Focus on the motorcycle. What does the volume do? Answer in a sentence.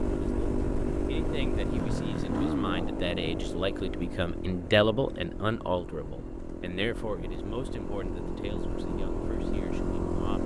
The loudness of the motorcycle goes down, then up.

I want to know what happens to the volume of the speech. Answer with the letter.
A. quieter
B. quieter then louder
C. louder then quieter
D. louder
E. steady
C.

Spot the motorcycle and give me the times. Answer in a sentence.
The motorcycle can be heard from 0.0 to 10.4 s.